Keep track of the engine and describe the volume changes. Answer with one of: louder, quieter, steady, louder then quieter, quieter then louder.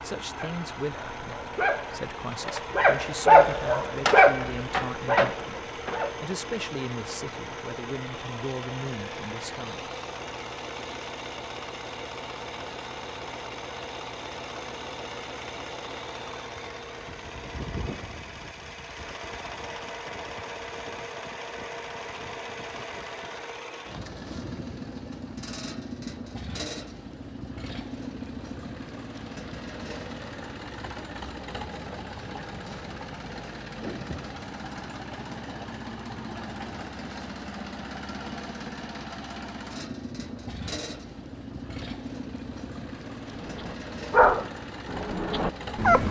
steady.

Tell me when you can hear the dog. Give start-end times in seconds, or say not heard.
0.3-6.2, 43.4-46.0.